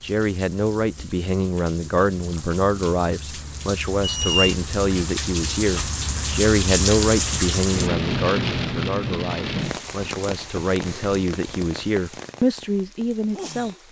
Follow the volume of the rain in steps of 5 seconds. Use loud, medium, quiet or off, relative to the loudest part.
quiet, loud, medium.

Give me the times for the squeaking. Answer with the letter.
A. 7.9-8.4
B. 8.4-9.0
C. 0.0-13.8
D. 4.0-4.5
D.